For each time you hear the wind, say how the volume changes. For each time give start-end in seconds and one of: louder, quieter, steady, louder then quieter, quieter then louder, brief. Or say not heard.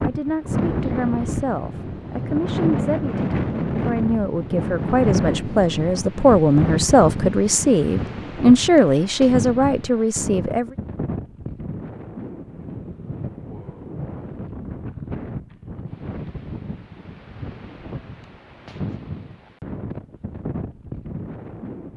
0.0-21.9 quieter.